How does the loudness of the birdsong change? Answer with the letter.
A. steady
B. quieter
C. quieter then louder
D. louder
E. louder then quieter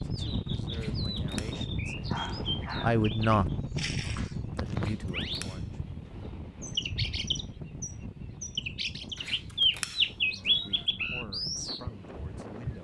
E.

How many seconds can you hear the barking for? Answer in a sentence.
The barking can be heard for 3 seconds in total.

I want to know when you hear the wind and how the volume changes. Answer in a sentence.
You can hear the wind from 0.0 to 12.7 s, getting quieter.